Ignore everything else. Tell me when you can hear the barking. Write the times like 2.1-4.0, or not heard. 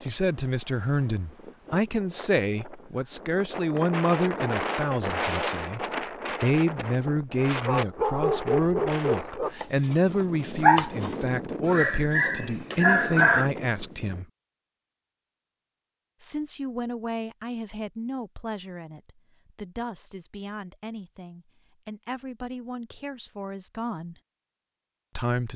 7.7-13.5.